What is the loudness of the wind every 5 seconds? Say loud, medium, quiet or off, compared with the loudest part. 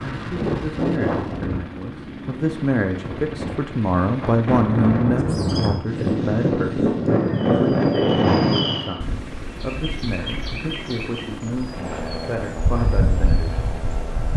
medium, loud, off.